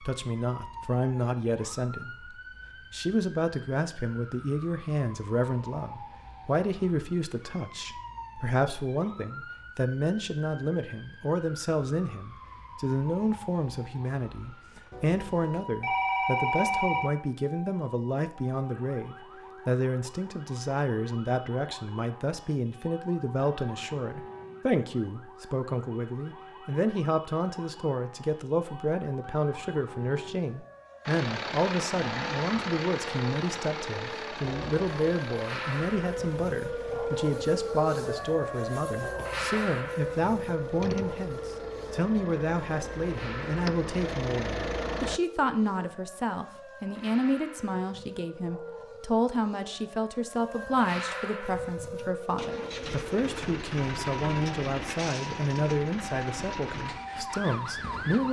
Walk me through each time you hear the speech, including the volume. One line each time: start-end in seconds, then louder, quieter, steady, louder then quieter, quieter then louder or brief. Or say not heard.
0.0-58.2 steady.